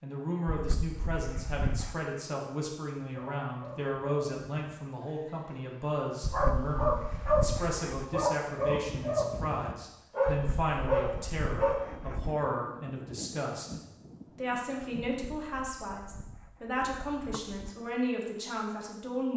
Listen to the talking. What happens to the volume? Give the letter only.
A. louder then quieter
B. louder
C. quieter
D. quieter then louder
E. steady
E.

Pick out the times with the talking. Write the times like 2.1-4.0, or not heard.
0.0-13.8, 14.3-19.3.